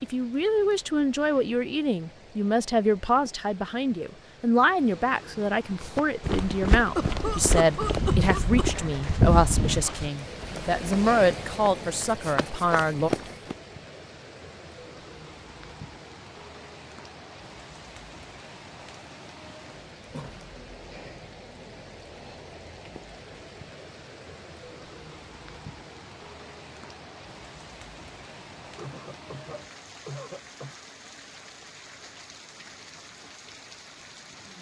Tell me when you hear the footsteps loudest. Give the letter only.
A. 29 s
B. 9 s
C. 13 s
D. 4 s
B.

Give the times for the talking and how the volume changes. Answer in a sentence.
You can hear the talking from 0.0 to 13.1 s, at a steady volume.